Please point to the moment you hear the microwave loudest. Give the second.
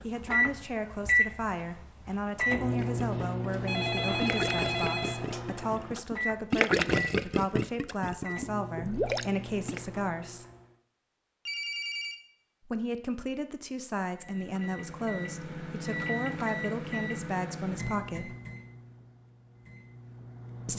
1 s.